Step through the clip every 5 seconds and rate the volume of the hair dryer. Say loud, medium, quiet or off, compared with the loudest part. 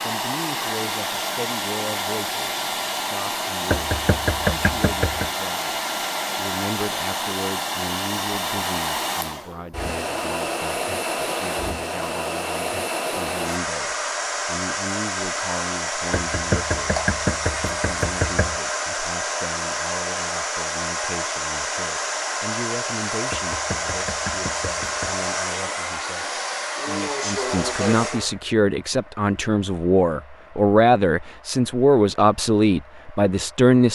loud, loud, loud, loud, loud, loud, quiet.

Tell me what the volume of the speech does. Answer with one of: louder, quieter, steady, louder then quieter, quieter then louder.
louder.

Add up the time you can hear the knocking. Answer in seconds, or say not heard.
6 s.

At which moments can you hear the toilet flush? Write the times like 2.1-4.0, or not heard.
not heard.